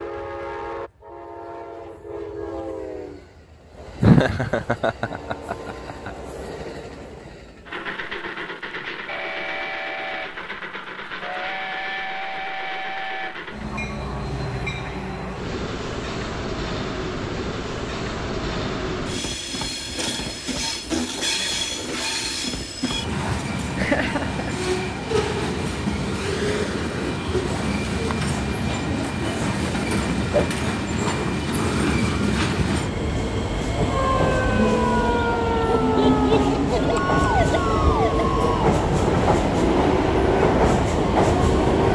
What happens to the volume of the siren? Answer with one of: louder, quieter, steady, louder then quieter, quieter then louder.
steady.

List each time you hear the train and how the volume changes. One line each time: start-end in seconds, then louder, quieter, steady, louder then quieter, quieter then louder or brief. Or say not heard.
0.0-41.9 louder.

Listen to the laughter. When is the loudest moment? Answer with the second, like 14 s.
4 s.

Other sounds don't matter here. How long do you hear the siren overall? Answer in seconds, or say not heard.
8 s.